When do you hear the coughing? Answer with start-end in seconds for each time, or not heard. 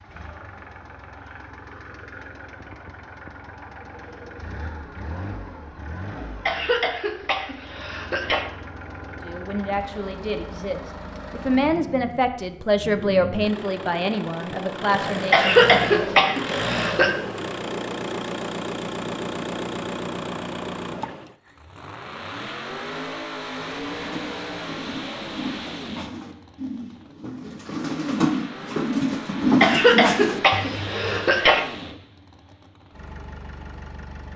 6.5-8.4, 15.3-17.1, 29.6-31.6.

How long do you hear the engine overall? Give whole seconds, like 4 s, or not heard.
34 s.